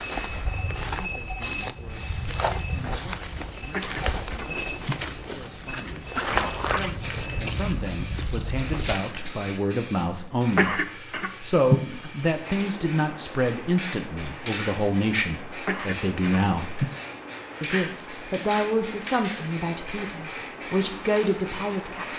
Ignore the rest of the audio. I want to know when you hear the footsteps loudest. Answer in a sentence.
The volume of the footsteps peaks at 6 seconds.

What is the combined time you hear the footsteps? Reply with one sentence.
You can hear the footsteps for 9 seconds altogether.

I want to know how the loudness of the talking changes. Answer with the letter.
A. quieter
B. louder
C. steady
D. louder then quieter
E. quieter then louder
B.